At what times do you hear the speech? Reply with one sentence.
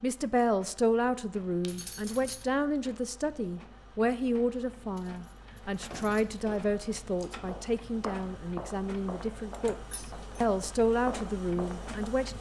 You can hear the speech from 0.0 to 12.3 s.